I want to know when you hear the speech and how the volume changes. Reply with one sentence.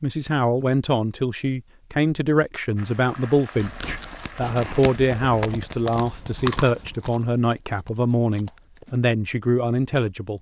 You can hear the speech from 0.0 to 10.3 s, at a steady volume.